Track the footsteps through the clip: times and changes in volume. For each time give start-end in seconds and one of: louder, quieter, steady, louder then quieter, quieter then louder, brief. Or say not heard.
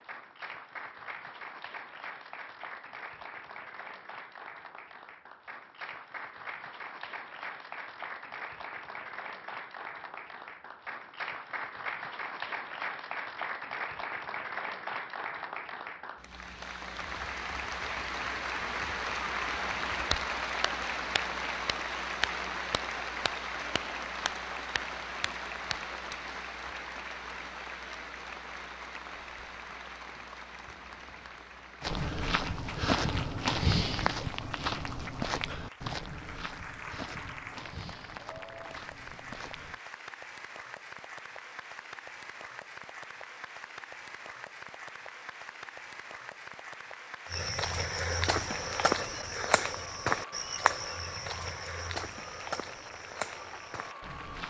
31.8-39.8 quieter
47.3-54.4 quieter.